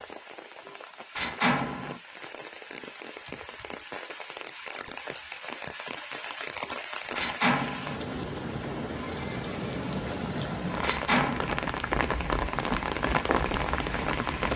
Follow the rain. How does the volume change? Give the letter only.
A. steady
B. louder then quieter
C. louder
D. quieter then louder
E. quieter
C.